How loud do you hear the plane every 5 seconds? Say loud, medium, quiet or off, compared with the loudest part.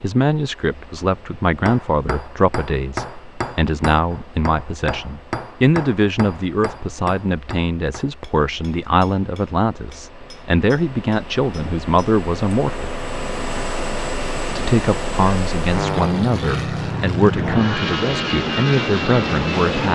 quiet, quiet, medium, loud.